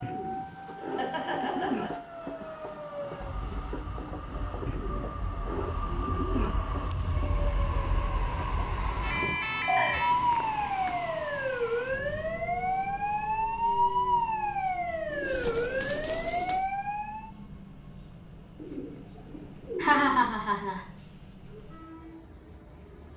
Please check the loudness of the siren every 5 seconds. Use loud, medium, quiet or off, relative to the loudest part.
quiet, medium, loud, loud, off.